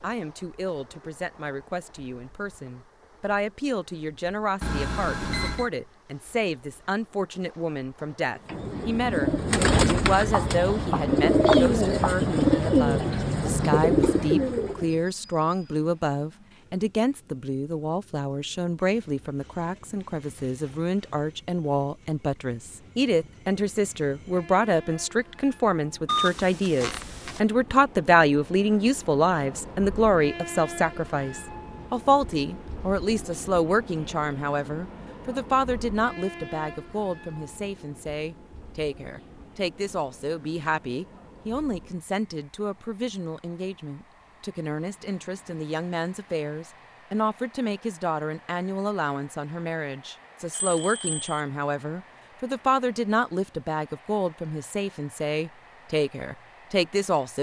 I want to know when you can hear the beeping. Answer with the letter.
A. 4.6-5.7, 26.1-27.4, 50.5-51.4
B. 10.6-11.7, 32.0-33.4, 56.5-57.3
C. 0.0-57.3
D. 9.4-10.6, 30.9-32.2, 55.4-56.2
A.